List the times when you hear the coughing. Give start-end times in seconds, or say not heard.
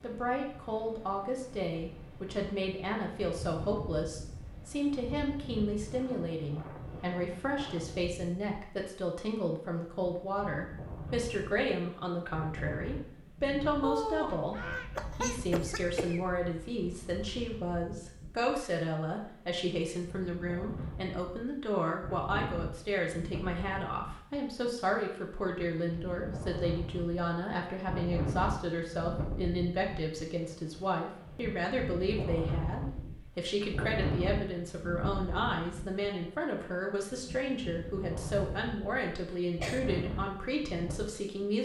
13.8-16.2, 39.3-40.0.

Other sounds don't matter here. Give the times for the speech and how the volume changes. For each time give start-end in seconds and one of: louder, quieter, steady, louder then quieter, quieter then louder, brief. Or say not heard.
0.0-41.5 steady.